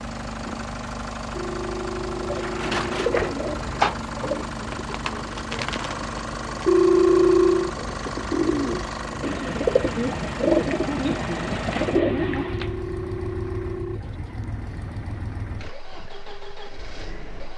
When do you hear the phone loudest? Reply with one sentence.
The volume of the phone peaks at 7 seconds.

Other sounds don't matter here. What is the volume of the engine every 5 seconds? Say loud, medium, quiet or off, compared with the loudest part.
loud, loud, loud, medium.